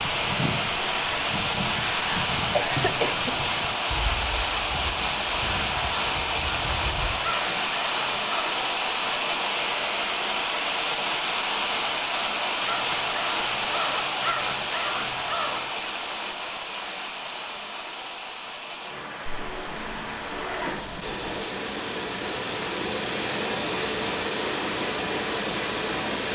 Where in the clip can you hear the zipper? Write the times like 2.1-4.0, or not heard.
19.2-21.5.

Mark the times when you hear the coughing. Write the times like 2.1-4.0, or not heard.
2.5-3.4.